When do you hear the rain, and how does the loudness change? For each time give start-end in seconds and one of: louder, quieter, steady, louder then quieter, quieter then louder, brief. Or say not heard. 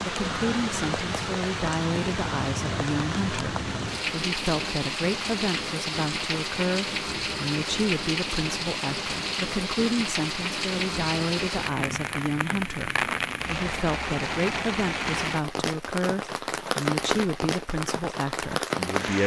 0.0-19.2 steady.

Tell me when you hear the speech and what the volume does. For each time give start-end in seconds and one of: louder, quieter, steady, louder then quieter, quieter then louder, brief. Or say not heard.
0.0-19.2 steady.